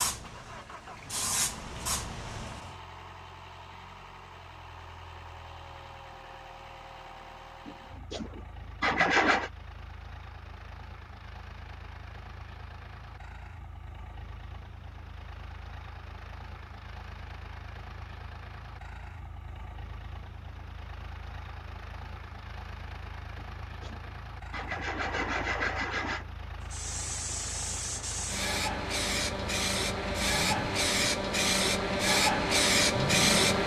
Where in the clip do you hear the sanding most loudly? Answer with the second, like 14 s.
9 s.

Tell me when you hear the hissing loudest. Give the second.
33 s.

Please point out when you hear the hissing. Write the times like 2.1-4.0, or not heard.
0.0-2.6, 26.7-33.6.